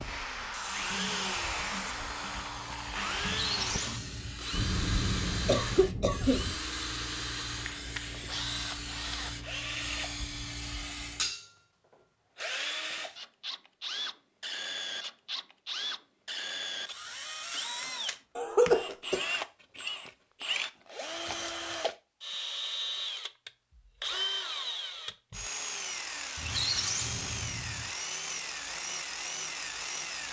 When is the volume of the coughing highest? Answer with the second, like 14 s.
19 s.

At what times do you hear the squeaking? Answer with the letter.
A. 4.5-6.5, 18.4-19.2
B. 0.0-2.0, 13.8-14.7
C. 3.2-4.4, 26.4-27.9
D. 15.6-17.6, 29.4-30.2
C.